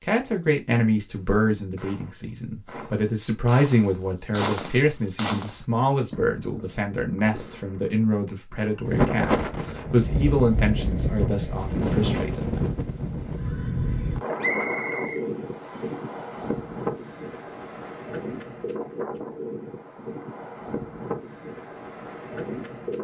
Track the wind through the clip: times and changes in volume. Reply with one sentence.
You can hear the wind from 8.8 to 22.9 s, getting quieter.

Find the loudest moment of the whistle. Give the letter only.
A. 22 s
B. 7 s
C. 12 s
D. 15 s
D.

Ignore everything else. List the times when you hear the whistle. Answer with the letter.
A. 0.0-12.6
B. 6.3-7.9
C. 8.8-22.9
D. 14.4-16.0
D.